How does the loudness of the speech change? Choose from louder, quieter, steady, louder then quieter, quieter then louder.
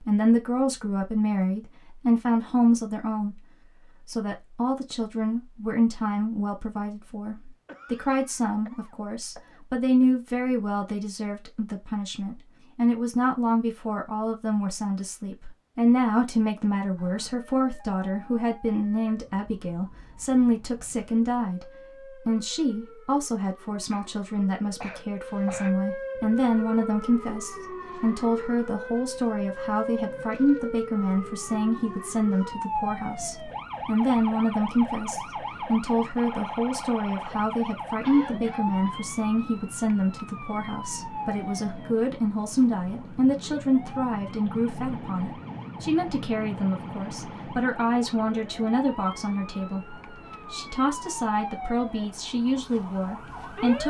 steady.